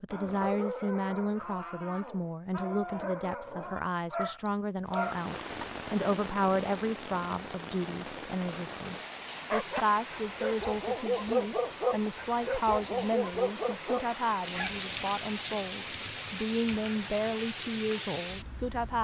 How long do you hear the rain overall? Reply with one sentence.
The rain can be heard for 14 seconds in total.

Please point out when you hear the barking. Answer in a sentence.
The barking can be heard from 0.1 to 5.7 s and from 9.5 to 15.1 s.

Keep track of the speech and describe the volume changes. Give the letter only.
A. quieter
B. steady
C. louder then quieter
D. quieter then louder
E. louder
B.